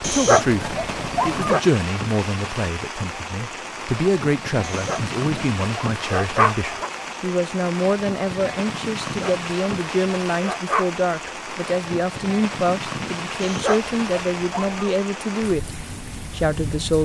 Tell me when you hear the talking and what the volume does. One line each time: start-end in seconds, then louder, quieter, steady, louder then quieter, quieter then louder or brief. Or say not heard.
0.0-16.9 steady.